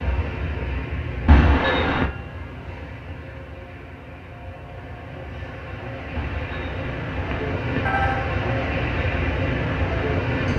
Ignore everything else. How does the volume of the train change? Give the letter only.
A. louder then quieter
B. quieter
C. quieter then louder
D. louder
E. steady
C.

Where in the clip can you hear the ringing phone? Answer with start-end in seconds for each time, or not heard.
1.2-2.1, 6.2-8.3.